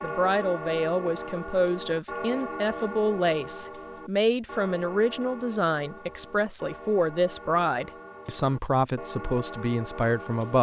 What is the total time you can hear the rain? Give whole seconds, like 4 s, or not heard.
not heard.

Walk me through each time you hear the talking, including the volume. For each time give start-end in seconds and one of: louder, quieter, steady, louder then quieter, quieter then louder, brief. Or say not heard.
0.0-10.5 steady.